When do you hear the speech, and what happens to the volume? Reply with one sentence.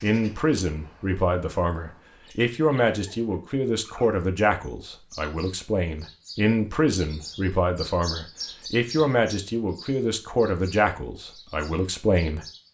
The speech can be heard from 0.0 to 12.4 s, at a steady volume.